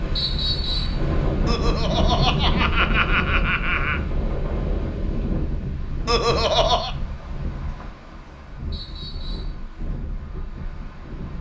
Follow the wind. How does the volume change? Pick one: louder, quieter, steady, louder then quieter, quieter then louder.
quieter.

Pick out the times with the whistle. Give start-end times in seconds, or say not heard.
0.1-1.0, 8.7-9.6.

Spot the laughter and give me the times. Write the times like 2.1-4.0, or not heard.
1.4-4.0, 6.0-7.0.